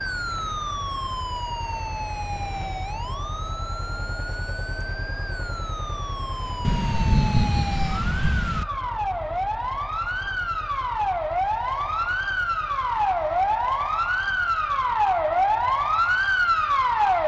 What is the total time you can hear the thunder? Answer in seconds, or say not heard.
2 s.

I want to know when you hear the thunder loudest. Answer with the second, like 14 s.
7 s.